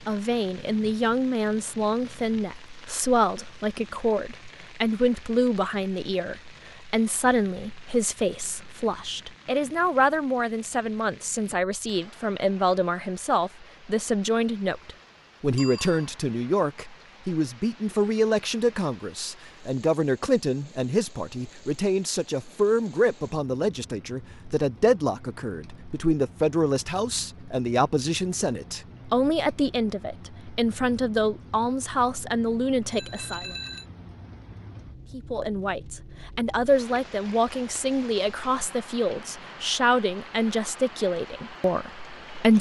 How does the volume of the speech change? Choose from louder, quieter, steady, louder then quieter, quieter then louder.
steady.